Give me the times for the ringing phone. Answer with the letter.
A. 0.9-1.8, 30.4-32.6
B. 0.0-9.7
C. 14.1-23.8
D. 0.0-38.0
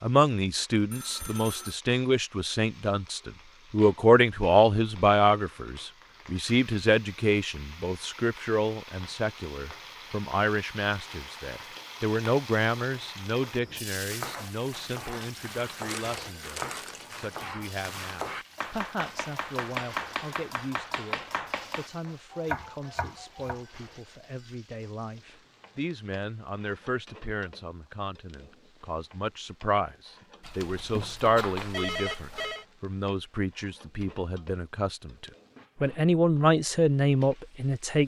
A.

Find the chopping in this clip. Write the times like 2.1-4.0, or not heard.
14.1-23.8.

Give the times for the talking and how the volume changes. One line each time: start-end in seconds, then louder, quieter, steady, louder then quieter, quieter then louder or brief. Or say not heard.
0.0-38.0 quieter then louder.